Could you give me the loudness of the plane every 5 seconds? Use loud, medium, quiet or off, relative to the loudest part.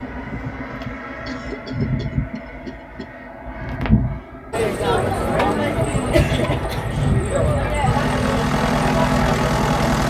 medium, loud.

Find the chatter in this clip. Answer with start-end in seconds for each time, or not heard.
4.5-9.9.